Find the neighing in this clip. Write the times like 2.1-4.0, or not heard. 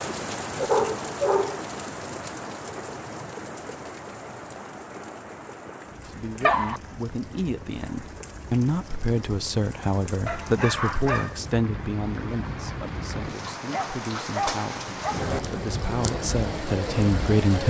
not heard.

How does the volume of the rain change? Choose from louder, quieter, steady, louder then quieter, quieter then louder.
quieter then louder.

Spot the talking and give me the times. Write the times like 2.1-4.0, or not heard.
6.0-17.6.